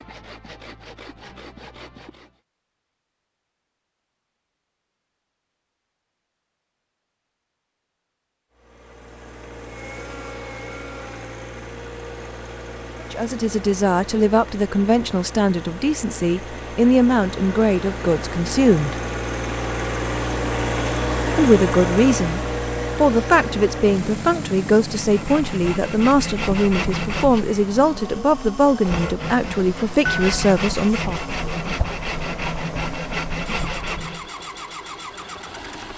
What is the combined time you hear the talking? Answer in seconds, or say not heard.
16 s.